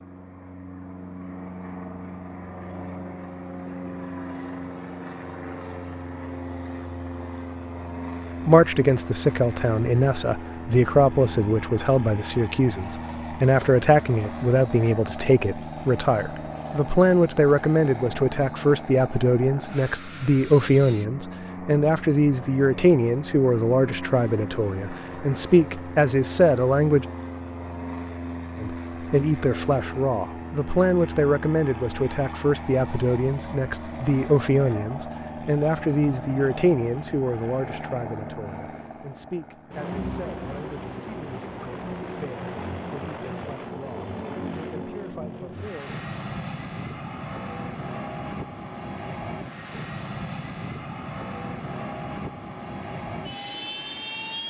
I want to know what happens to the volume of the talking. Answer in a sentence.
The loudness of the talking goes down.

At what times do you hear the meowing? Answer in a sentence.
The meowing can't be heard in this clip.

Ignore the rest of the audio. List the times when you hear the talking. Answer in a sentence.
The talking can be heard from 8.4 to 27.1 s and from 28.6 to 46.0 s.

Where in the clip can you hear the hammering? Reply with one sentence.
The hammering can't be heard in this clip.